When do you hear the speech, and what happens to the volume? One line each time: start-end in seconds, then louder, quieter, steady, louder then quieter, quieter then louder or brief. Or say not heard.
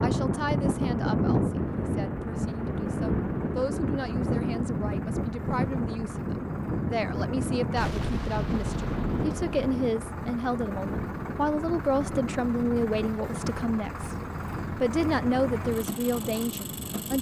0.0-14.1 louder
14.7-17.1 brief.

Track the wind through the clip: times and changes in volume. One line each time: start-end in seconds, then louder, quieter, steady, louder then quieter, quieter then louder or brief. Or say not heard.
0.0-17.1 quieter.